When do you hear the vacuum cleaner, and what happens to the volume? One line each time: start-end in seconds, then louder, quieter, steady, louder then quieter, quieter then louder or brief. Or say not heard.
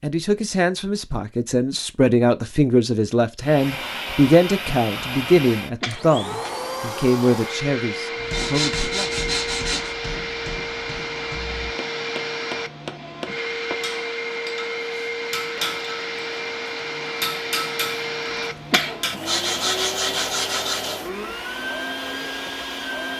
3.4-23.1 steady.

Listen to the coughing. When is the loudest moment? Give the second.
19 s.